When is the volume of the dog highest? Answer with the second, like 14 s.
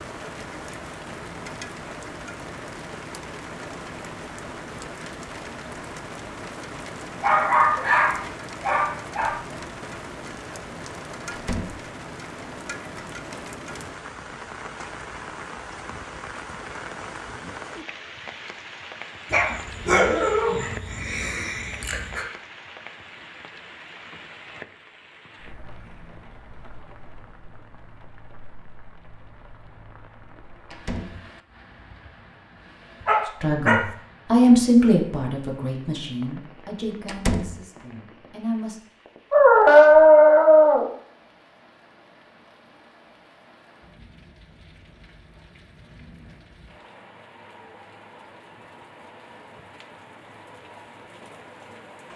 40 s.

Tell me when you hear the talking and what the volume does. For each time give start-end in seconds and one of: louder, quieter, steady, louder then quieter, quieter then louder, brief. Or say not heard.
33.2-38.8 quieter.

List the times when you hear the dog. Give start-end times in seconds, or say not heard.
7.2-9.3, 19.3-22.2, 33.0-33.9, 39.3-40.9.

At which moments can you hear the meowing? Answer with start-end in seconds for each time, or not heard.
not heard.